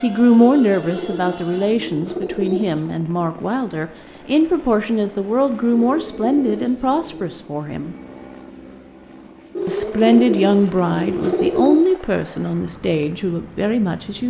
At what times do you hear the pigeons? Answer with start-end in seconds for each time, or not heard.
0.3-2.8, 5.7-7.3, 9.6-11.8.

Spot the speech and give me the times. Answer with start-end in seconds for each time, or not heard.
0.0-8.0, 9.7-14.2.